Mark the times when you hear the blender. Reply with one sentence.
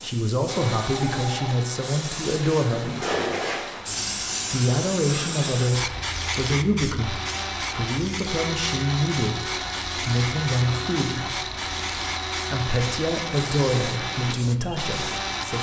The blender can be heard from 0.0 to 15.5 s.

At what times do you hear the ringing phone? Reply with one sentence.
You can hear the ringing phone from 0.9 to 1.6 s.